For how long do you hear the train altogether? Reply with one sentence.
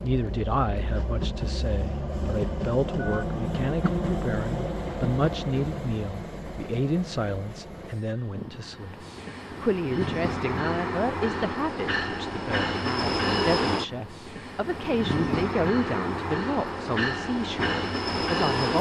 You can hear the train for 19 seconds altogether.